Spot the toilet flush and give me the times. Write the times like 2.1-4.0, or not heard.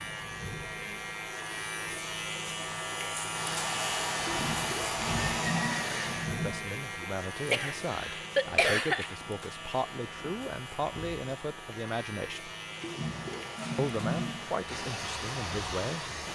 4.2-6.7, 12.7-14.6.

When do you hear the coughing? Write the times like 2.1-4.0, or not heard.
7.5-9.2.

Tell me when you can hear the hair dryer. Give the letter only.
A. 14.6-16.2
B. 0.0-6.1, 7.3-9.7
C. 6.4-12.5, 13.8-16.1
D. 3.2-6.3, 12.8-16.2
D.